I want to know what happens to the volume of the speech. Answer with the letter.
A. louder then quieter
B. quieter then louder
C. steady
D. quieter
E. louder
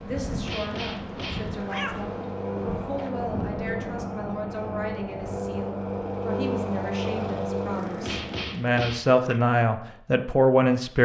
E.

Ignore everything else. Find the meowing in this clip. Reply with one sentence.
You can hear the meowing from 0.4 to 2.0 s and from 8.0 to 9.4 s.